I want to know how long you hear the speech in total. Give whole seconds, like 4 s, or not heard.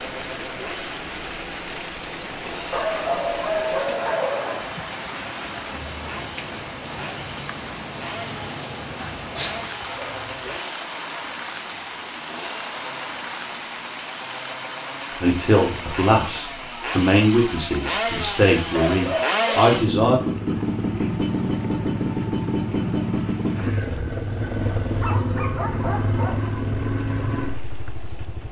5 s.